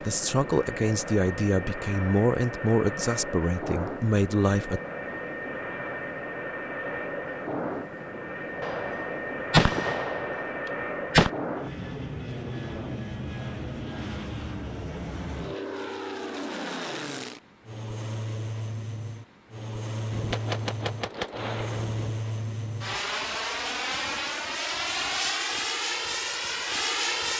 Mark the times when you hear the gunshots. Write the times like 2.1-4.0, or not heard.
8.6-11.3, 20.1-22.1.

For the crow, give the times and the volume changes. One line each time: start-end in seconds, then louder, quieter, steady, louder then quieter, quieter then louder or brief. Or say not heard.
not heard.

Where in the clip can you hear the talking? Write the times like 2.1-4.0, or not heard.
0.0-4.8.